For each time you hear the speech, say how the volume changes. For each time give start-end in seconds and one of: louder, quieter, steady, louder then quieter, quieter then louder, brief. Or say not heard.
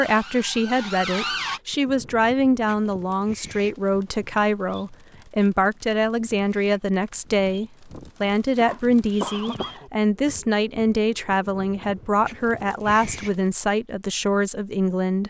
0.0-15.2 steady.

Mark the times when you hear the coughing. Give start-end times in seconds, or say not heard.
8.2-9.9.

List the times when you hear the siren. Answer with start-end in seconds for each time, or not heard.
0.0-1.6.